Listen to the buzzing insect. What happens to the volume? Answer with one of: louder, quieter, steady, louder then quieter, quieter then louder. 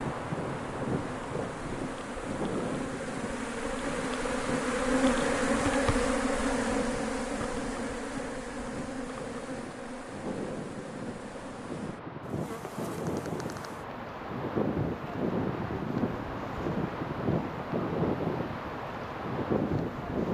louder then quieter.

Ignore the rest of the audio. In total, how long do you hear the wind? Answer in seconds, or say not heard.
20 s.